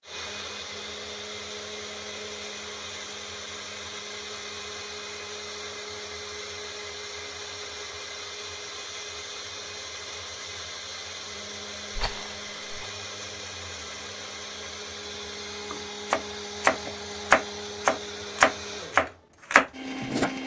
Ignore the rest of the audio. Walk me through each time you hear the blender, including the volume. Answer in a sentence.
The blender can be heard from 0.0 to 20.4 s, at a steady volume.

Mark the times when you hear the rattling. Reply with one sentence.
The rattling can be heard from 11.9 to 12.9 s.